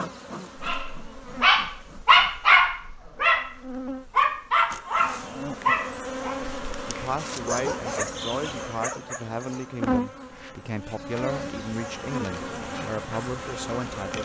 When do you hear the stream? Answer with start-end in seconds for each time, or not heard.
not heard.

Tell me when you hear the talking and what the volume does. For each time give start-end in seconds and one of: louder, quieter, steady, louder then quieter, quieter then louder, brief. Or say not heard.
6.8-14.2 steady.